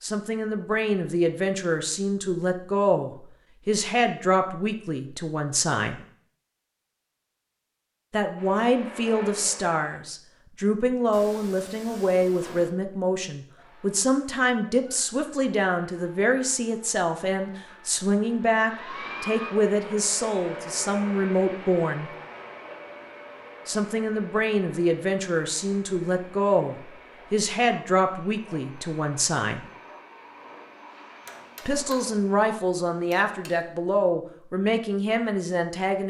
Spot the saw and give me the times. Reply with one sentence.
You can't hear the saw here.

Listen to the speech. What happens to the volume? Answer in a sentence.
The volume of the speech stays about the same.